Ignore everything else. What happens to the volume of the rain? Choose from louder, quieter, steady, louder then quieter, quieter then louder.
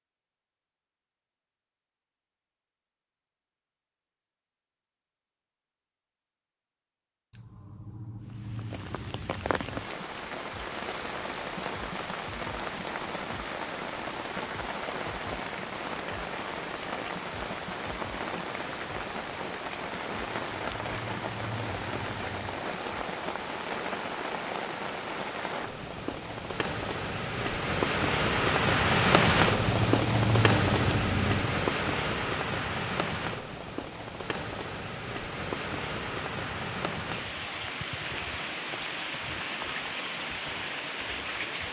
louder then quieter.